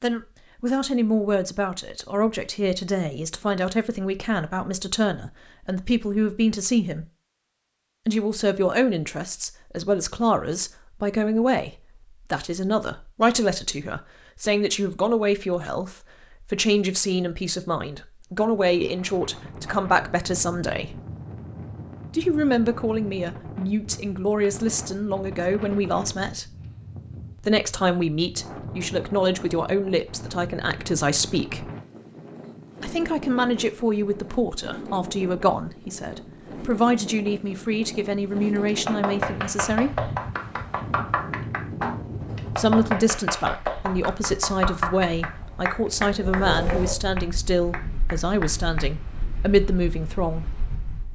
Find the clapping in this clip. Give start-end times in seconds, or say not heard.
38.6-48.9.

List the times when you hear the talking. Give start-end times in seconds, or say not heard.
0.0-7.0, 8.1-21.0, 22.1-26.5, 27.4-31.7, 32.8-40.0, 42.5-50.5.